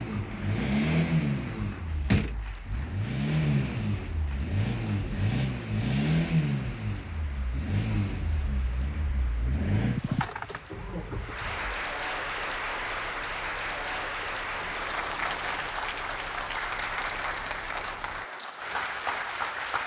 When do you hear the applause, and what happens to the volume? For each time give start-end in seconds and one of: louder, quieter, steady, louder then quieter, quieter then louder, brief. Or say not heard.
0.0-19.8 louder.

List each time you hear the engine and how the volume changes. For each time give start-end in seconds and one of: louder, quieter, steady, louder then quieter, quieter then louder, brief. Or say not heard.
0.0-18.2 quieter.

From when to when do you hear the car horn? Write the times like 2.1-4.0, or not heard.
not heard.